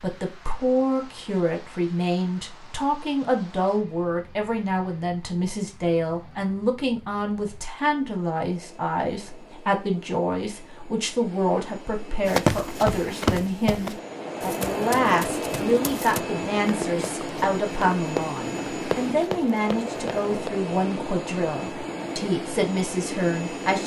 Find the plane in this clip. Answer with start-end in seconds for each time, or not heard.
0.0-23.8.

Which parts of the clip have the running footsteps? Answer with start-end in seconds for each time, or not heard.
12.2-20.5.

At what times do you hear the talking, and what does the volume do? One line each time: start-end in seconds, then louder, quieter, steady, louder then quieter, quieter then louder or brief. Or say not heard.
0.0-23.8 steady.